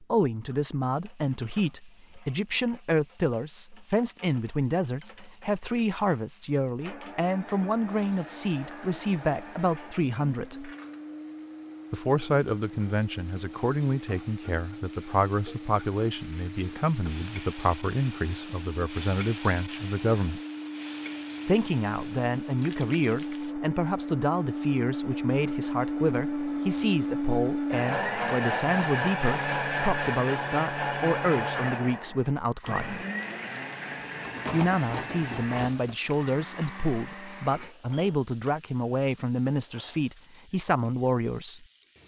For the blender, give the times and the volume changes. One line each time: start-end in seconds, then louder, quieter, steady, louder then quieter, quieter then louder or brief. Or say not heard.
6.8-37.8 louder then quieter.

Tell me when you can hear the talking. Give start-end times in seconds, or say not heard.
0.0-10.7, 11.9-20.4, 21.4-33.0, 34.5-41.6.